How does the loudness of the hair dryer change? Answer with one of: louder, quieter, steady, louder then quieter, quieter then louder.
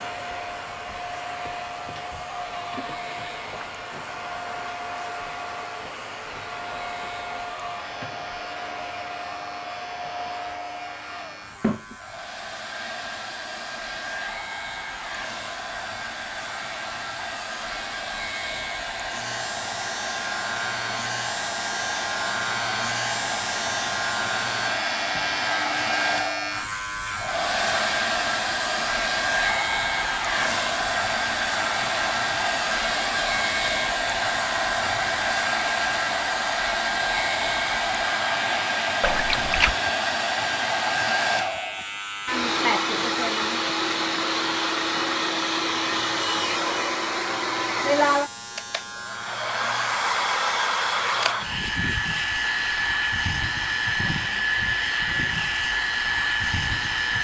louder.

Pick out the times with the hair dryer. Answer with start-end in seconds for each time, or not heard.
0.0-57.1.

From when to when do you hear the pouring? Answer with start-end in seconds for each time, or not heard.
39.0-39.8.